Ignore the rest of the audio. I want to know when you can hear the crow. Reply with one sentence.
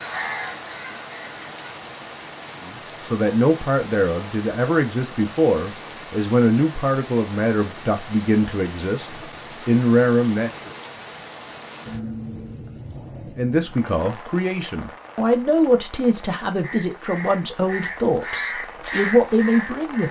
The crow can be heard from 0.0 to 1.7 s and from 16.6 to 20.0 s.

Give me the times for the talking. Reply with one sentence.
The talking can be heard from 2.6 to 10.7 s and from 13.3 to 20.0 s.